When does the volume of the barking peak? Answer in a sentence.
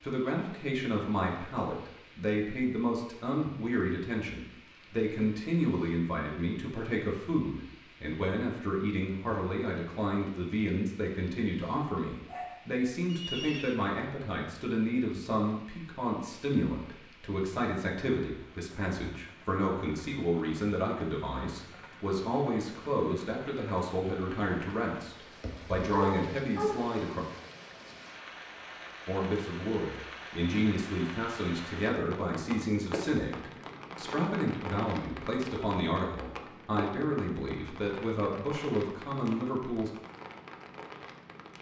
The loudest moment of the barking is at 26 seconds.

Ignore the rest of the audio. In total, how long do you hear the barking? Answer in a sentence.
The barking can be heard for 2 seconds in total.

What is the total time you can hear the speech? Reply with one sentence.
You can hear the speech for 38 seconds altogether.